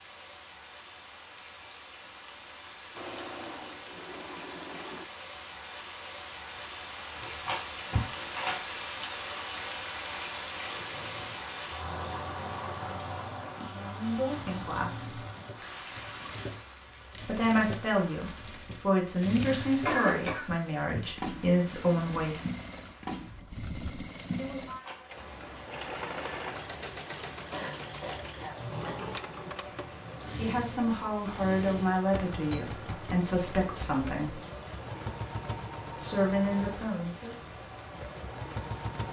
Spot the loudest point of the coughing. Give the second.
20 s.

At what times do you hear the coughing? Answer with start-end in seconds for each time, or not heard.
7.5-8.1, 19.6-20.4, 27.5-29.0.